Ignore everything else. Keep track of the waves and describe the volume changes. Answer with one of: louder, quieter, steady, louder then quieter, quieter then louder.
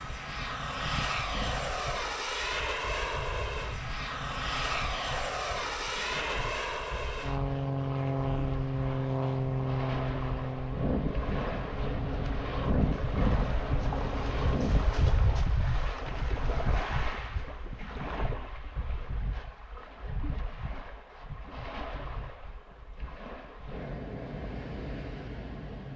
louder then quieter.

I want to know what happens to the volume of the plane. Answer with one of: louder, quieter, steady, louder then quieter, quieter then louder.
steady.